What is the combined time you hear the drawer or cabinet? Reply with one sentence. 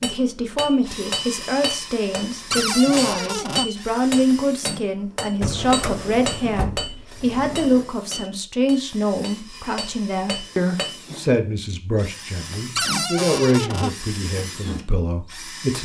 You can hear the drawer or cabinet for 5 seconds altogether.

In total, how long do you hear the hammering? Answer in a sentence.
You can hear the hammering for 11 seconds altogether.